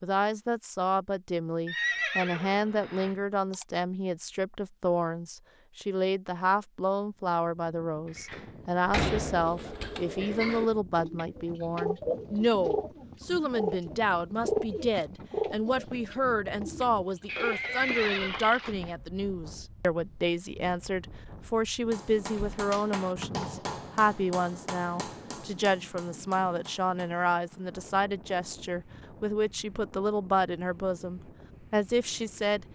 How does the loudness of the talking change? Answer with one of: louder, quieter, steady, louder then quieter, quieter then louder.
steady.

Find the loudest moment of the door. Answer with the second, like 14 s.
9 s.